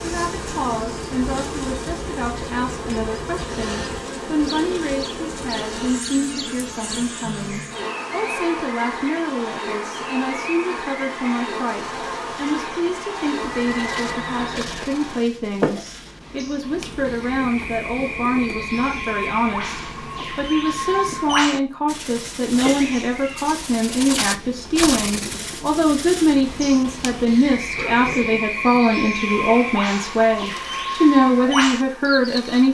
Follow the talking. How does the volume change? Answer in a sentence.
The loudness of the talking goes up.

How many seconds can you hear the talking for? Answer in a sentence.
The talking can be heard for 33 seconds in total.